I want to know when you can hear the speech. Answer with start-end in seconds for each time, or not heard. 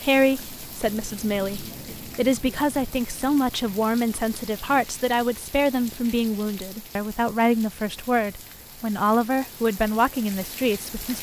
0.0-11.1.